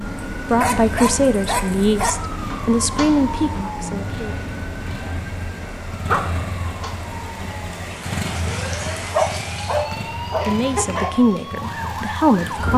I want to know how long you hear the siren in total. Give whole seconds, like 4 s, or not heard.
13 s.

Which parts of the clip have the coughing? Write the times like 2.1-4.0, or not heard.
not heard.